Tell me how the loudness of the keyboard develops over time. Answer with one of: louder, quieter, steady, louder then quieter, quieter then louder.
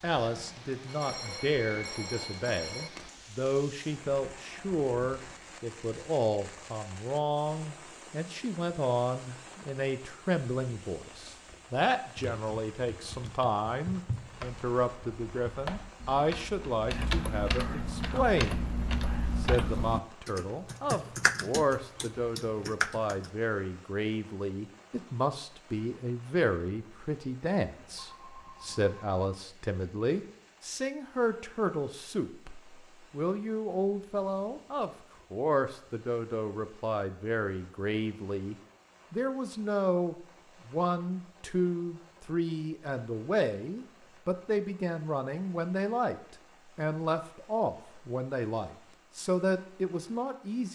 louder.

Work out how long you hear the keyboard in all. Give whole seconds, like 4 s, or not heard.
11 s.